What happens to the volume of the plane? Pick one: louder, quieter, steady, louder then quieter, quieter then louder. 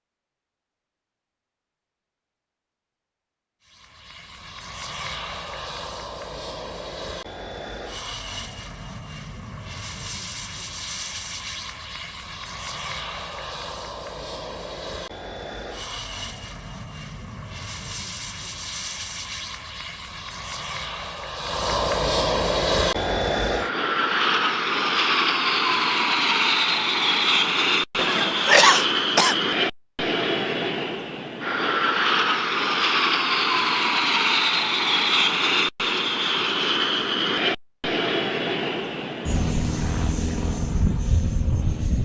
louder.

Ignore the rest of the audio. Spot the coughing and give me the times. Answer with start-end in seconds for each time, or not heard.
27.9-29.4.